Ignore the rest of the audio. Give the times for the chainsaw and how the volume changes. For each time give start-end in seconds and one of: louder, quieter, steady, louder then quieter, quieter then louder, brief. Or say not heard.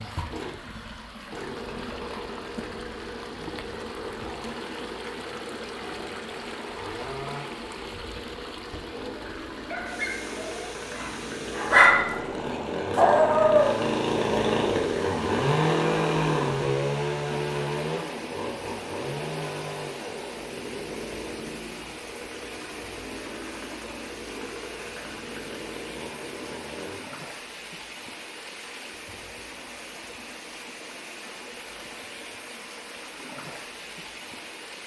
0.0-26.9 louder then quieter.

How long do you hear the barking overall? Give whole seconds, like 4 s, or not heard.
5 s.